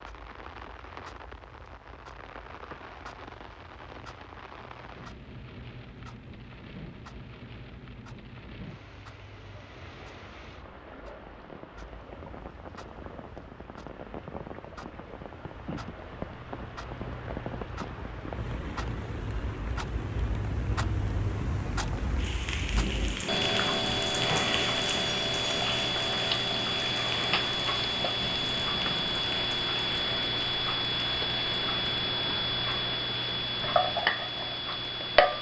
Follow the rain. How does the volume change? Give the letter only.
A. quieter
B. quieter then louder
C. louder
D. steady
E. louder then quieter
E.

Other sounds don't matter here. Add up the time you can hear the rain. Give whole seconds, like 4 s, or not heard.
35 s.